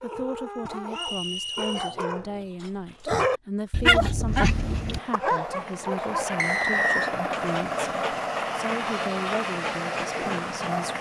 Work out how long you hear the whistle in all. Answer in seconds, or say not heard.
2 s.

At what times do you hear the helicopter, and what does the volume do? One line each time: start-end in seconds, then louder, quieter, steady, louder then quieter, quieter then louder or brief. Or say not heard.
4.2-10.9 louder.